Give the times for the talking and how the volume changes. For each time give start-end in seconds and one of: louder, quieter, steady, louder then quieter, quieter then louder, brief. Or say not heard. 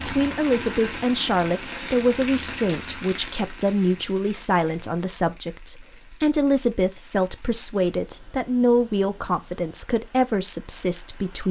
0.1-11.4 steady.